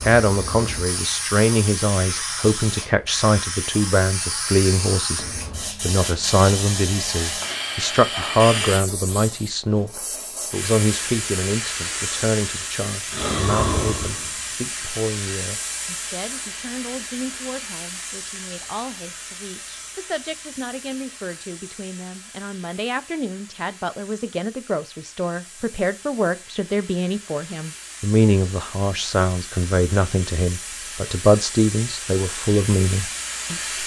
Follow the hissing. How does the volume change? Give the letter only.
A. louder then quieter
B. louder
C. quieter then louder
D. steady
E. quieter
C.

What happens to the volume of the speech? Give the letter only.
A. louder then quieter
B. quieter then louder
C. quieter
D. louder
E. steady
B.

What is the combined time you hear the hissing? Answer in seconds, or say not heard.
34 s.